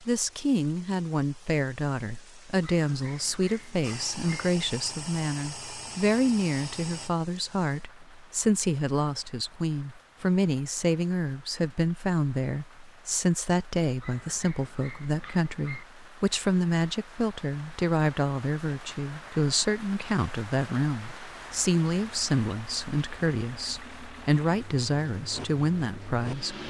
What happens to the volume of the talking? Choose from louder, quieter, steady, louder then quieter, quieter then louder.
steady.